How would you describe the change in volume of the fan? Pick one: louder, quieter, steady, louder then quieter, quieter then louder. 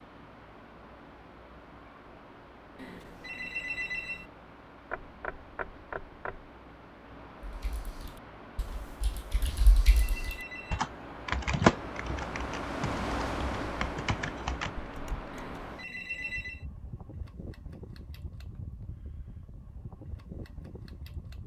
louder then quieter.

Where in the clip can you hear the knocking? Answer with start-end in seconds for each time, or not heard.
4.9-6.5.